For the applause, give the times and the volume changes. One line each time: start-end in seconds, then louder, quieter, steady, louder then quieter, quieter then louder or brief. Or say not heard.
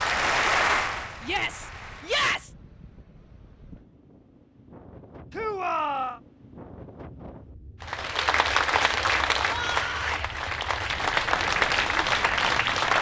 0.0-2.2 brief
7.8-12.9 quieter then louder.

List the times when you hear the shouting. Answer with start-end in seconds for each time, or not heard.
1.2-2.5, 5.3-6.2, 9.4-10.3.